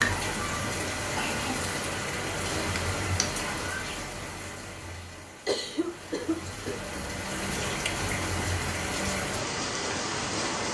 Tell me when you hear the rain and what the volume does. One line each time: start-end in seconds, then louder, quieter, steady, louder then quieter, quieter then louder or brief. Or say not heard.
0.0-10.6 quieter then louder.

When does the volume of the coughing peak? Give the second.
6 s.